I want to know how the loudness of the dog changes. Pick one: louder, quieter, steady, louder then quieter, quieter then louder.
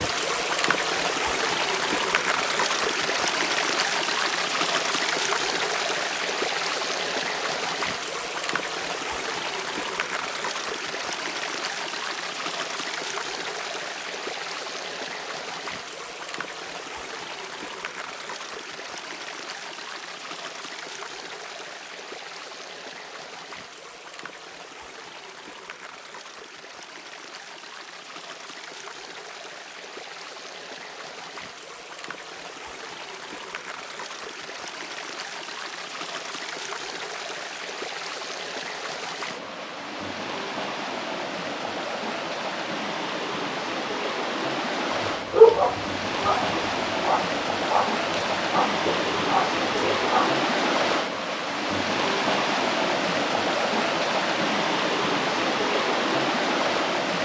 quieter.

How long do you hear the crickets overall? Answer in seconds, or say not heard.
not heard.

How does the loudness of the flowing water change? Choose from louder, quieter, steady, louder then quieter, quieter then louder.
quieter then louder.